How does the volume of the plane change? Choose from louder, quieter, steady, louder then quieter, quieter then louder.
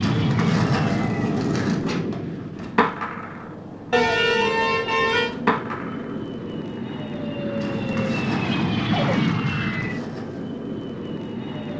quieter then louder.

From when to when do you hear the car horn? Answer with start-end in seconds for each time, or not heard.
3.9-5.3.